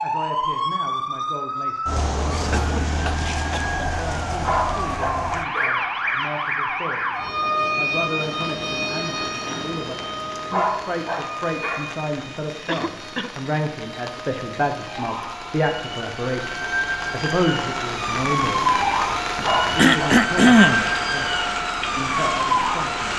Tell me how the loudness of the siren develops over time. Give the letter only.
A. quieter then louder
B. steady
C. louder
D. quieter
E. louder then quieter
A.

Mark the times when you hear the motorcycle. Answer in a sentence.
You can't hear the motorcycle here.